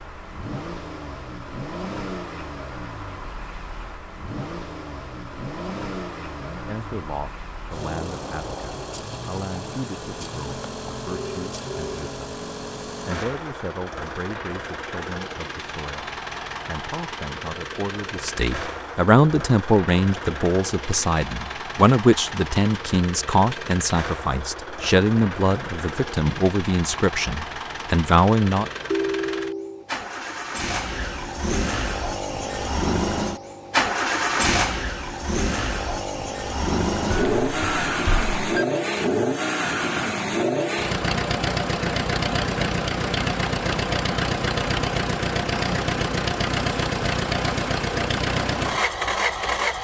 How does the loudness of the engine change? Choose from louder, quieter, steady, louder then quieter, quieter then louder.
louder.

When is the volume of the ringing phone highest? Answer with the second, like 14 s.
29 s.